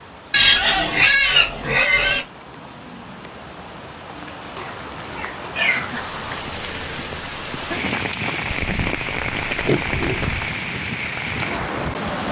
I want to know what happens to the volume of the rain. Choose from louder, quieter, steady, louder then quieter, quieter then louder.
louder.